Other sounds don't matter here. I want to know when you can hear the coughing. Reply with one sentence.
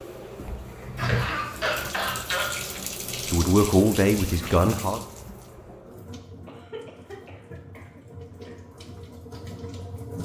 The coughing can be heard from 0.8 to 2.5 s and from 6.5 to 8.6 s.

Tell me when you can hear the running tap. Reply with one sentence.
The running tap can be heard from 0.0 to 10.2 s.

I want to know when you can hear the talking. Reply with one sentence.
The talking can be heard from 3.3 to 5.0 s.